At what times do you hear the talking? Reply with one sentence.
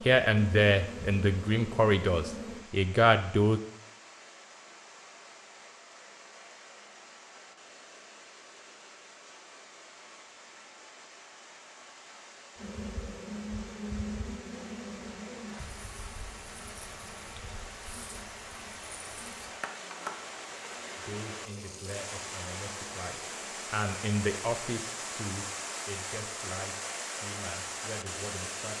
The talking can be heard from 0.0 to 3.6 s and from 20.9 to 28.7 s.